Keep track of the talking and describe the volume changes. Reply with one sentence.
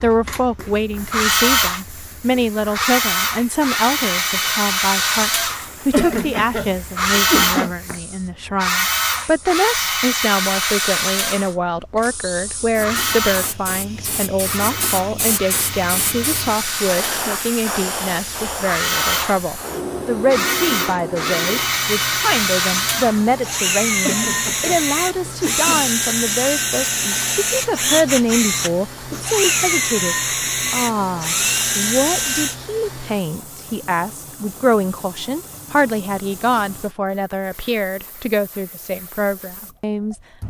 The loudness of the talking stays about the same.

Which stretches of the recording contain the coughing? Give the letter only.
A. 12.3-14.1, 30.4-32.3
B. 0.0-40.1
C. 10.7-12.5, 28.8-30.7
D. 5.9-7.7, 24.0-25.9
D.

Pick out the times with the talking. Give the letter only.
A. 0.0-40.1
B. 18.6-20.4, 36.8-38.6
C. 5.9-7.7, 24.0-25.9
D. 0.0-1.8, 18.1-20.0
A.